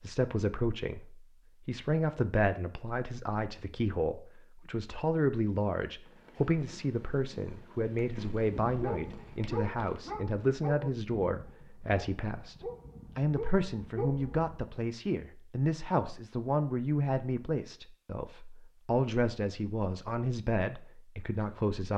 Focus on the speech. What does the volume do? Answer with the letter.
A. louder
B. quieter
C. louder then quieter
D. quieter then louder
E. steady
E.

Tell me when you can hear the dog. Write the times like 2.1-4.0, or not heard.
8.5-14.6.